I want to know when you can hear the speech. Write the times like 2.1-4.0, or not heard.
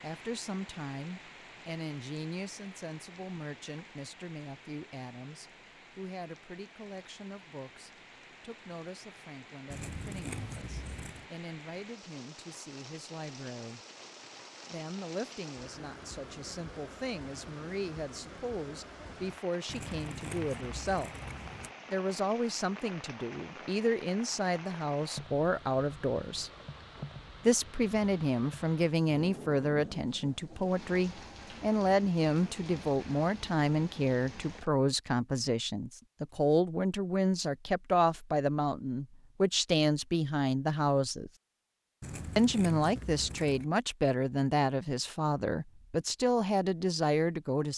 0.0-13.8, 14.7-21.1, 21.9-26.5, 27.4-41.3, 42.4-47.7.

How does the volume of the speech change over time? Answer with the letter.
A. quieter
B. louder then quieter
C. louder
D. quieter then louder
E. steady
C.